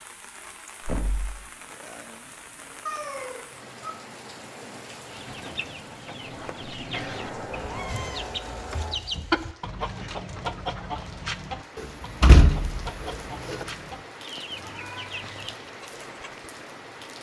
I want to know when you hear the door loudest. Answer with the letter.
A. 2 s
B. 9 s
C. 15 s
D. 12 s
D.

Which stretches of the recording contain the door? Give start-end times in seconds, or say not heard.
0.8-1.4, 6.2-8.1, 11.8-13.7.